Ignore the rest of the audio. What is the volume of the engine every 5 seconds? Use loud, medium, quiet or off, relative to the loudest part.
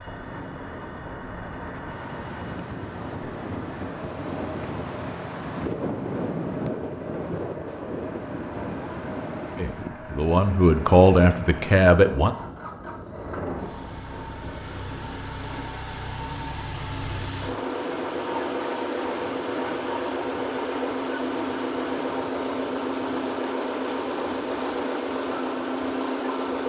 quiet, quiet, medium, loud, loud, loud.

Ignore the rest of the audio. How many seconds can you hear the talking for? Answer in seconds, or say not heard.
3 s.